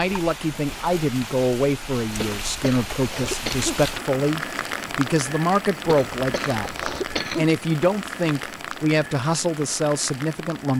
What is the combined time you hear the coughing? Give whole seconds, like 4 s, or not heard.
3 s.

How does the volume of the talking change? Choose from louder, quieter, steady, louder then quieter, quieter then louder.
steady.